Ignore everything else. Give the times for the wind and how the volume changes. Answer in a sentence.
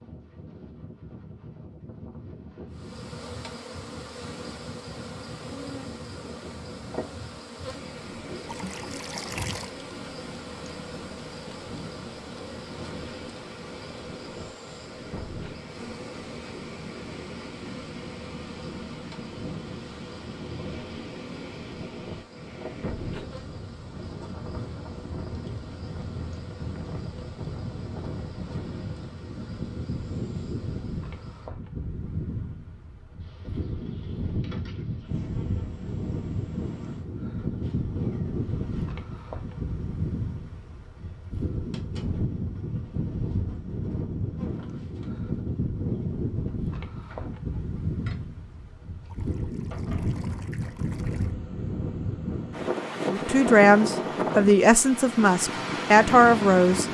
You can hear the wind from 0.0 to 56.8 s, getting louder.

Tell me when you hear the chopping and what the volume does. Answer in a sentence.
The chopping can't be heard in this clip.